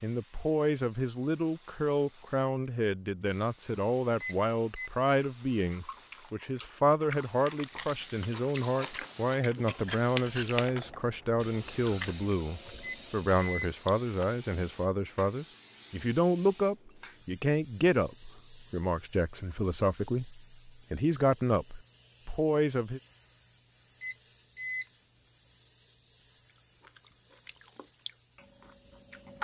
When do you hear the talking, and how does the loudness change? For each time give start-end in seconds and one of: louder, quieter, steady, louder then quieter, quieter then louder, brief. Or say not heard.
0.0-23.0 steady.